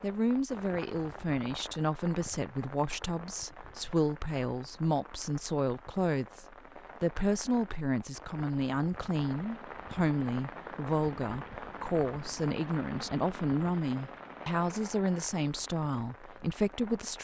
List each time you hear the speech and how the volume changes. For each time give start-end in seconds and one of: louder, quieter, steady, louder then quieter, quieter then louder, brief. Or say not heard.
0.0-17.1 steady.